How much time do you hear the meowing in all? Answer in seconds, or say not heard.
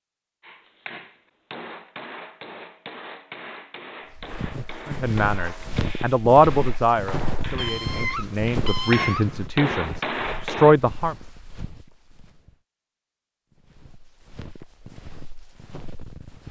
2 s.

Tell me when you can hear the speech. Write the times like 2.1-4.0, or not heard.
4.8-11.2.